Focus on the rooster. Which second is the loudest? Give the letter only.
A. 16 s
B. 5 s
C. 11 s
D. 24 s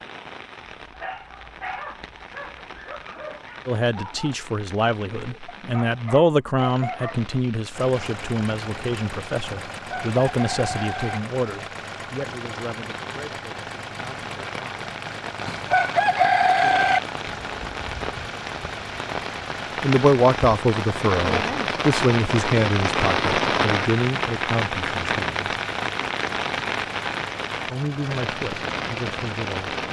A.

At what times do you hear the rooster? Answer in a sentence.
You can hear the rooster from 9.7 to 11.2 s and from 15.4 to 17.0 s.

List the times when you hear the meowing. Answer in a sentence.
You can't hear the meowing here.